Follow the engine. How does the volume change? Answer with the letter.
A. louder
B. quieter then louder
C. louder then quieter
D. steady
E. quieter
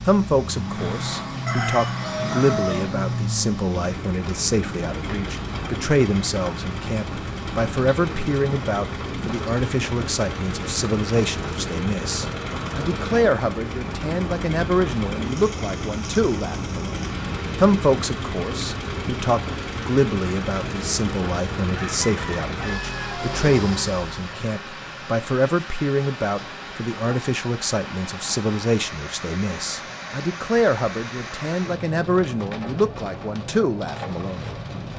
D.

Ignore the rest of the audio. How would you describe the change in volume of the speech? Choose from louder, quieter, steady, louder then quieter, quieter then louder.
steady.